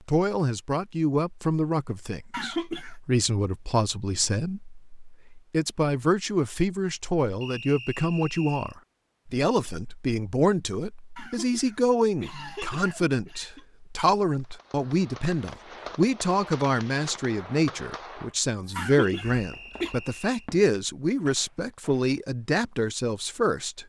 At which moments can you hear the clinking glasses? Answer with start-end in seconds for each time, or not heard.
not heard.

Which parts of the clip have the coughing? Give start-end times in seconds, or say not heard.
2.3-3.0, 11.2-13.7, 18.8-19.9.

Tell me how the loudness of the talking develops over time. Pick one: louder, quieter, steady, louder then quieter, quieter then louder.
steady.